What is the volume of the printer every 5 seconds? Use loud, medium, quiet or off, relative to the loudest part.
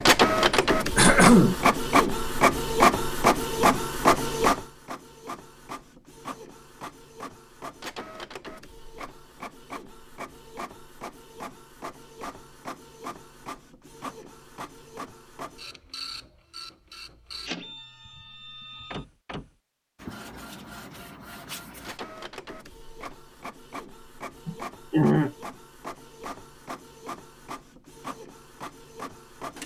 loud, quiet, quiet, quiet, quiet, quiet.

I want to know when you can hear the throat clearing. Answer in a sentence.
You can hear the throat clearing from 0.9 to 1.6 s and from 24.4 to 25.4 s.